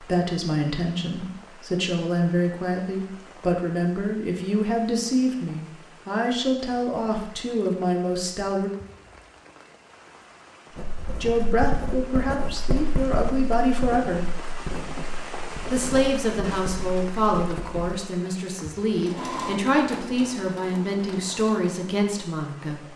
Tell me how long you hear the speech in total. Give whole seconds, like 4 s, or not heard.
19 s.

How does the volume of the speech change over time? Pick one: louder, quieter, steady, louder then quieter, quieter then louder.
steady.